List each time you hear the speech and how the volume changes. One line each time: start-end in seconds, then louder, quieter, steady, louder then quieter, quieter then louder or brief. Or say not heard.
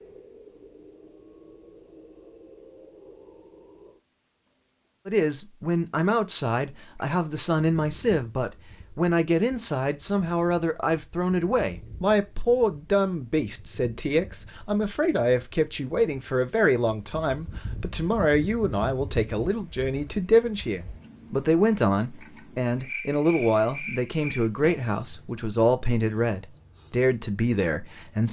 5.0-28.2 steady.